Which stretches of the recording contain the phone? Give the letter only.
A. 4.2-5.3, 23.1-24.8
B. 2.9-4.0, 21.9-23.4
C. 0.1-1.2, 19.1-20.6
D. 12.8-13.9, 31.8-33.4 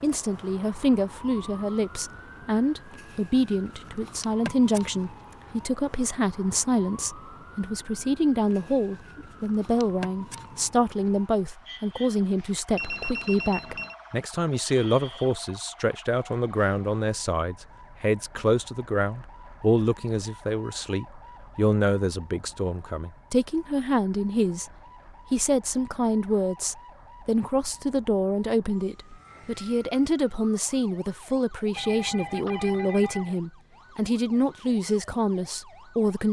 D.